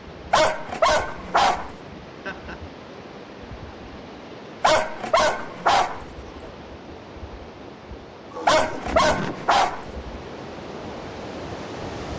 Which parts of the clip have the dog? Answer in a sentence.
The dog can be heard from 0.3 to 1.8 s, from 4.6 to 6.5 s and from 8.4 to 9.9 s.